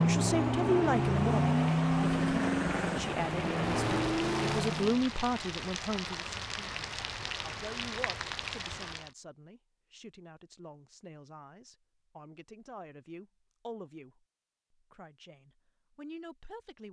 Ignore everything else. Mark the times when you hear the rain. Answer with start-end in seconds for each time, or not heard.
0.0-9.2.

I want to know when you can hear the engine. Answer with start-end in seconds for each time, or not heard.
0.0-5.1.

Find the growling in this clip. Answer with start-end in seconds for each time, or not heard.
2.0-3.1.